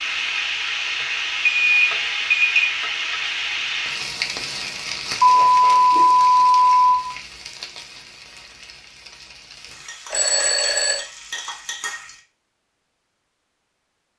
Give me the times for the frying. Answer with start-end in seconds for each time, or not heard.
0.0-12.2.